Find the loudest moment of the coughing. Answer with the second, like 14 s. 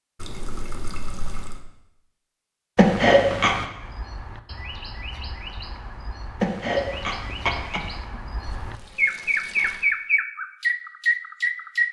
3 s.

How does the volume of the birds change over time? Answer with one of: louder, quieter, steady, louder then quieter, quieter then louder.
louder.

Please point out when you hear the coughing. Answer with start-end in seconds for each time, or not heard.
2.8-3.6, 6.4-8.2.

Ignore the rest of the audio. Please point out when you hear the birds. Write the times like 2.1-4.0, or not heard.
3.8-11.8.